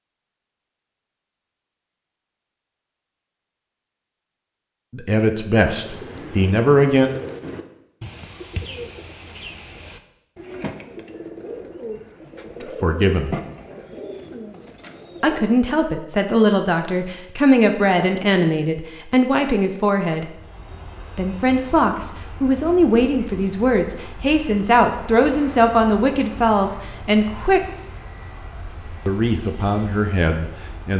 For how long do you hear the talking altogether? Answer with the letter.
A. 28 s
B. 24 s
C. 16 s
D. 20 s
C.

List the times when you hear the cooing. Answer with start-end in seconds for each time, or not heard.
5.8-15.4.